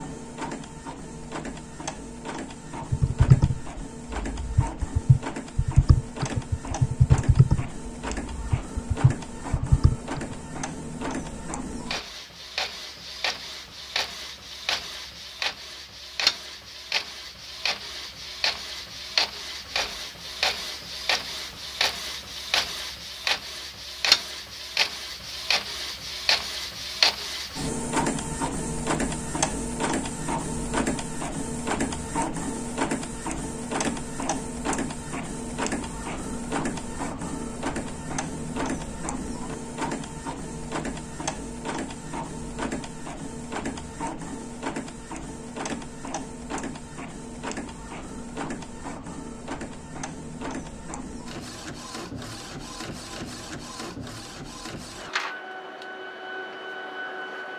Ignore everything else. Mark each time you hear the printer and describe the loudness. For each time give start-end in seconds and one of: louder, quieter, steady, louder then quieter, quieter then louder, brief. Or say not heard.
0.0-57.5 louder then quieter.